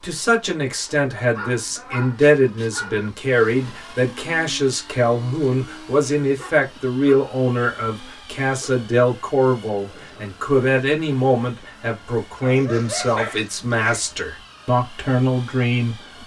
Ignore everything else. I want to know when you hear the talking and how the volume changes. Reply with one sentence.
The talking can be heard from 0.0 to 16.2 s, at a steady volume.